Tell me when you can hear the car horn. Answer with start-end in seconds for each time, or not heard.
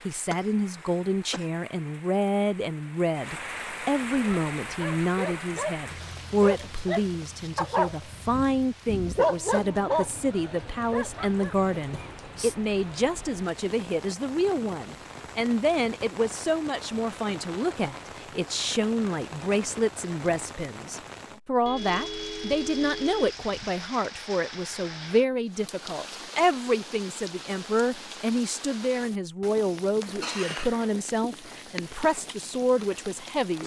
21.6-23.4.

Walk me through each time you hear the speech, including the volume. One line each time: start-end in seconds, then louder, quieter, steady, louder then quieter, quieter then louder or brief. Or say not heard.
0.1-33.6 steady.